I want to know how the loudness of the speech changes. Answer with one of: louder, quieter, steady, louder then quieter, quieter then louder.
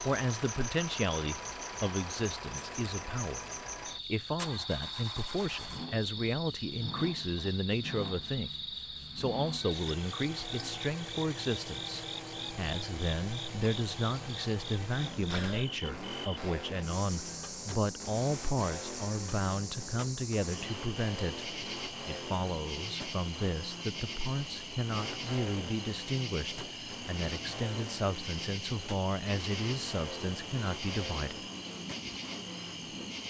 steady.